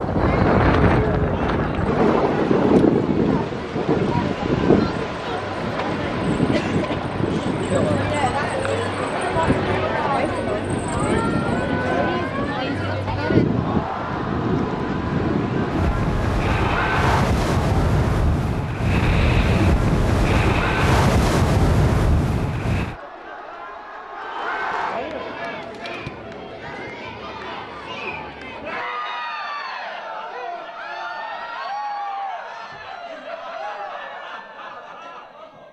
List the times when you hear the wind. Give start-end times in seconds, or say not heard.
0.0-22.9.